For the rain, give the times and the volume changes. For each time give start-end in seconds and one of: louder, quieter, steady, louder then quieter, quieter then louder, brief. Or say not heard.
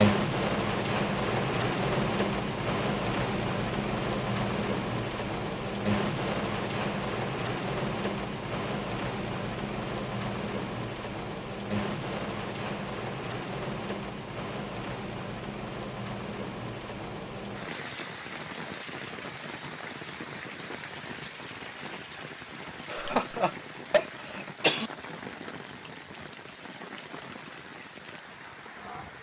0.0-29.1 quieter.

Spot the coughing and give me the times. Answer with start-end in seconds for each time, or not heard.
22.9-24.9.